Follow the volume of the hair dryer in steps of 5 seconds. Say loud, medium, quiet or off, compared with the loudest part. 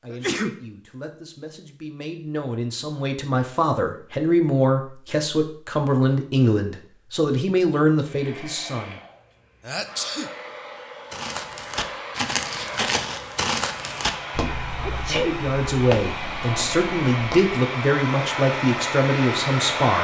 off, quiet, medium, loud.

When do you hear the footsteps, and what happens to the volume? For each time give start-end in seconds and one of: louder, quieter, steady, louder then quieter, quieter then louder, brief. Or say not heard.
11.1-17.6 quieter.